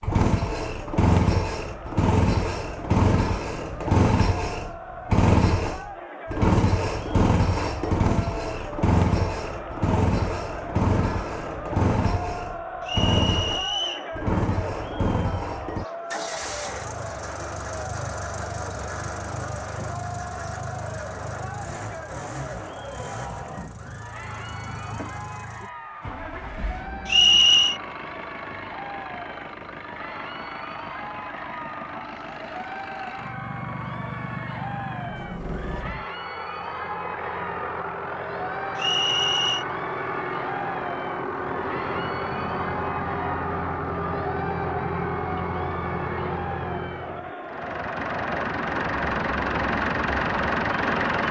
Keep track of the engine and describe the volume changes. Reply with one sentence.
The volume of the engine goes down, then up.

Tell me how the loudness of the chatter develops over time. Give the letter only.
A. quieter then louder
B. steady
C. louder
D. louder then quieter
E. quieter
B.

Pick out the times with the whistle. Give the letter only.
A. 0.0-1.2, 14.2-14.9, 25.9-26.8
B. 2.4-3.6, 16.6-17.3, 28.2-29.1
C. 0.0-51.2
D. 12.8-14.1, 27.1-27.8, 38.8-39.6
D.